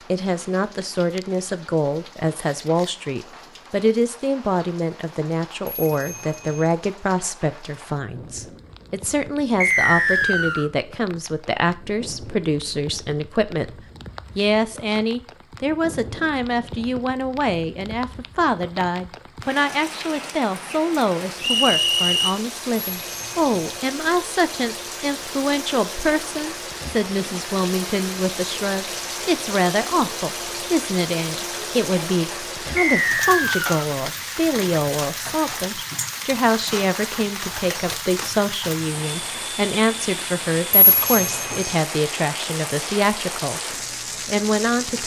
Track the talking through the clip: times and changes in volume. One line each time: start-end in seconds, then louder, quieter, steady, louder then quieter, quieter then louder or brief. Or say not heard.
0.1-45.0 steady.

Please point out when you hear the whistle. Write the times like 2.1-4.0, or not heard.
9.6-10.7, 21.4-22.4, 32.8-33.9.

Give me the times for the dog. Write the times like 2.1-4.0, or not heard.
not heard.